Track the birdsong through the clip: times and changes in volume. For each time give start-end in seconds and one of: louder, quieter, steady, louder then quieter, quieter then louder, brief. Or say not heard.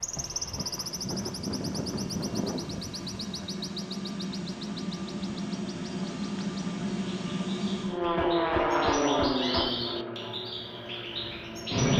0.0-11.9 quieter then louder.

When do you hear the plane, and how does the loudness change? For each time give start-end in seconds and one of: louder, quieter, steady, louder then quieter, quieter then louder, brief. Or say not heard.
0.0-11.9 louder then quieter.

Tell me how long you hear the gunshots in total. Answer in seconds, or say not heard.
2 s.